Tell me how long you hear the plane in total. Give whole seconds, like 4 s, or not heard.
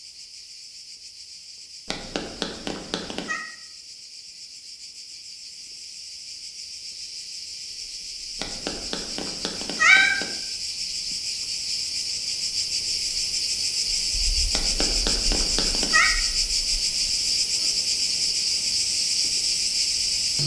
not heard.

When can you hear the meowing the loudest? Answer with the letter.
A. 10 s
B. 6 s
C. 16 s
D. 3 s
A.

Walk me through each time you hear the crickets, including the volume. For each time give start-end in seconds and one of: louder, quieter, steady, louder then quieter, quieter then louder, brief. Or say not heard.
0.0-20.4 louder.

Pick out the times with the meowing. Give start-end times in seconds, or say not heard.
1.9-3.4, 8.4-10.2, 14.6-16.1.